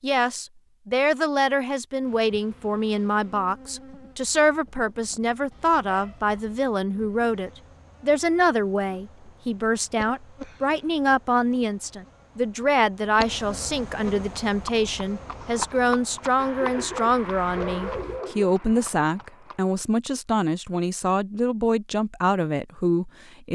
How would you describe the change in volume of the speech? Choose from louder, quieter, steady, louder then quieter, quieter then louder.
steady.